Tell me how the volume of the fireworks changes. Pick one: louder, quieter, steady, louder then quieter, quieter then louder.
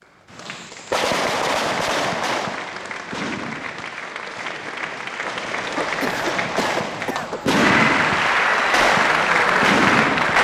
quieter then louder.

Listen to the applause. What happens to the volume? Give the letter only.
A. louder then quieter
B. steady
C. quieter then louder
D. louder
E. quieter
D.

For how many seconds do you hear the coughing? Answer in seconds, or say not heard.
2 s.